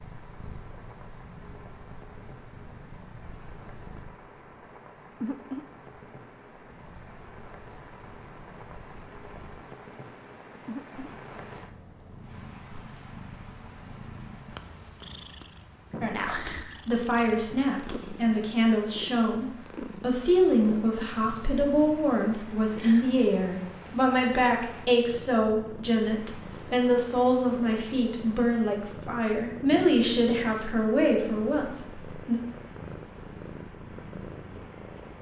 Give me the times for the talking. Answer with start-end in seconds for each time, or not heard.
16.0-32.4.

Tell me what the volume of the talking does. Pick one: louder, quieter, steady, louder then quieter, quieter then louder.
steady.